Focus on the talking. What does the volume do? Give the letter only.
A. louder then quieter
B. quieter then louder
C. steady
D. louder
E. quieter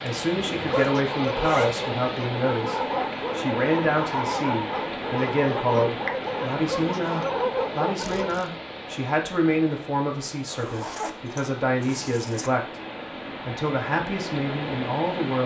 C.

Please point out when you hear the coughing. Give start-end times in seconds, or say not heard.
not heard.